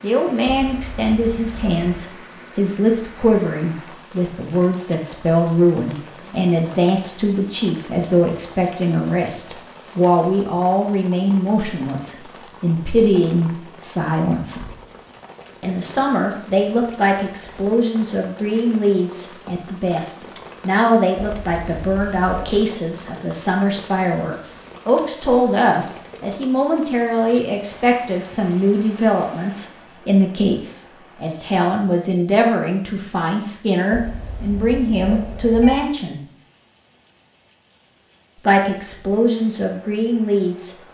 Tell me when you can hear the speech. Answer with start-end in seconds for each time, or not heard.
0.0-14.6, 15.6-36.2, 38.5-40.8.